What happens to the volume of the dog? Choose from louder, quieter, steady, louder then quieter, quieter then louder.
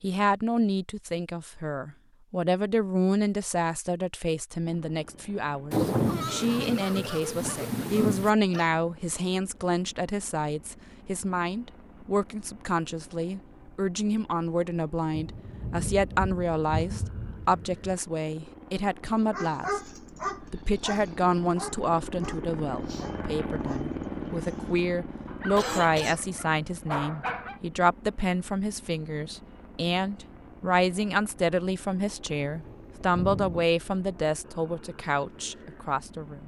quieter then louder.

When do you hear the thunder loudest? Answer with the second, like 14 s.
6 s.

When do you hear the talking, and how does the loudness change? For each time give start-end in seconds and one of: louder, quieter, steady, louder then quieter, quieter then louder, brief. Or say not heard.
0.0-36.4 steady.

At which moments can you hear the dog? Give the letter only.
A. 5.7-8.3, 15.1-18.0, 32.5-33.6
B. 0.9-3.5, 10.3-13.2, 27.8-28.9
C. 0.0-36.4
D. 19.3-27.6
D.